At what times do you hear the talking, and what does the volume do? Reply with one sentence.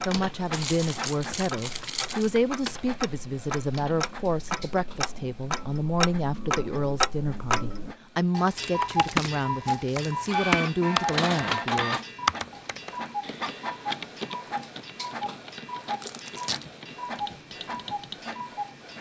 You can hear the talking from 0.1 to 12.0 s, at a steady volume.